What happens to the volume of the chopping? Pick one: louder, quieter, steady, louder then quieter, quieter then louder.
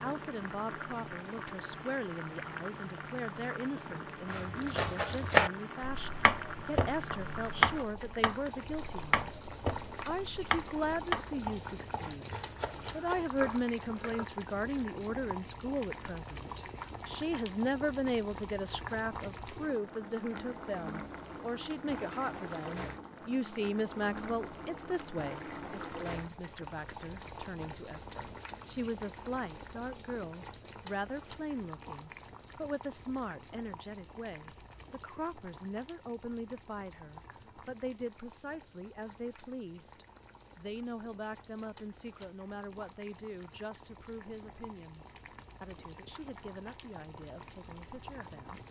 quieter.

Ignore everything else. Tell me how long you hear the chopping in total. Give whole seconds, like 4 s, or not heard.
10 s.